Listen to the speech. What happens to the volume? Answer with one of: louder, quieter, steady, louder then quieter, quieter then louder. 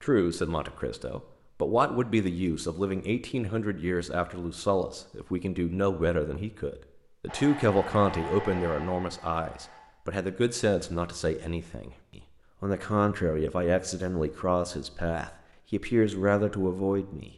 steady.